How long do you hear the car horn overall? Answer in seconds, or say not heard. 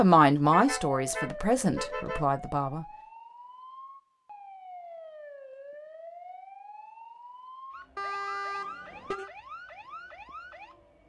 3 s.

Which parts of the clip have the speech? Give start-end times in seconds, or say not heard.
0.0-2.9.